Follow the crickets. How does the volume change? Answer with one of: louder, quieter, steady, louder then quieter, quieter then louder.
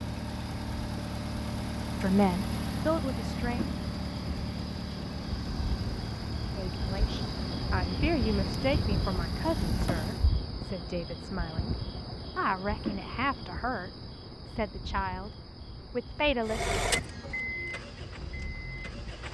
louder then quieter.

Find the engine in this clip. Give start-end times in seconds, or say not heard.
0.0-10.3, 16.4-19.2.